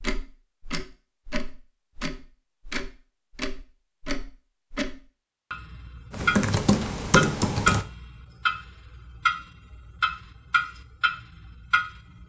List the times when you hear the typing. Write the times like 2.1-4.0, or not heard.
6.1-7.8.